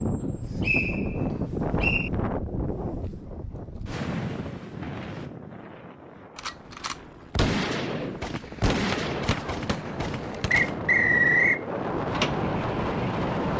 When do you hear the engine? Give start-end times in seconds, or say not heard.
11.9-13.5.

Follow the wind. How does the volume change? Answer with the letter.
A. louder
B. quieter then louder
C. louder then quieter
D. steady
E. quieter
B.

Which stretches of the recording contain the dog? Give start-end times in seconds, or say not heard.
not heard.